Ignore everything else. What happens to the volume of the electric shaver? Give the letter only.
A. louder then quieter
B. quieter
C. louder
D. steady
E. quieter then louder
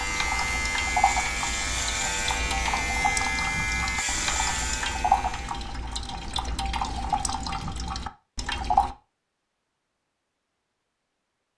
D.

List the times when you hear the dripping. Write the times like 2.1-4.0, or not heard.
0.0-8.9.